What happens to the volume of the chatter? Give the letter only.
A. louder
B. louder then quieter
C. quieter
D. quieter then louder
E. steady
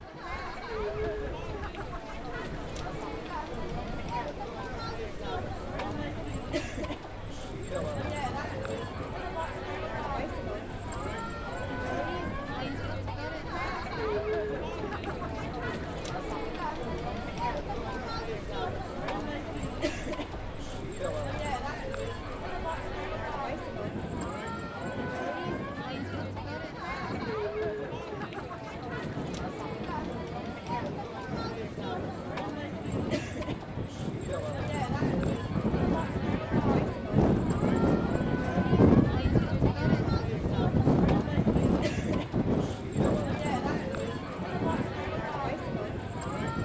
E.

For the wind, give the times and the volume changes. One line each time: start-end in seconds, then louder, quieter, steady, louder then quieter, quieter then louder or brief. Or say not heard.
0.0-46.5 louder.